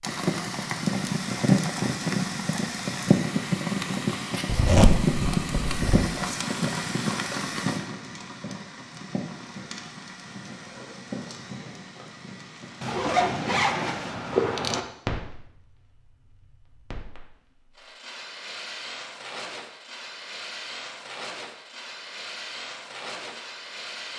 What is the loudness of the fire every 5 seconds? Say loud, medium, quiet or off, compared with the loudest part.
loud, loud, quiet, quiet, quiet.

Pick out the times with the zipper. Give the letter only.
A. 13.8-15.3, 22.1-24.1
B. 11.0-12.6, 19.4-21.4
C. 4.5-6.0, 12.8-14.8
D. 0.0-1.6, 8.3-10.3
C.